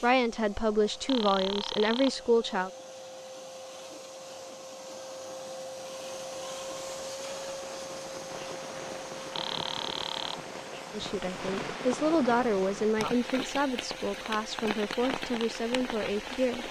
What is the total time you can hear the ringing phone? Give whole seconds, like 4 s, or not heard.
2 s.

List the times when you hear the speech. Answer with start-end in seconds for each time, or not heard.
0.0-2.7, 10.9-16.6.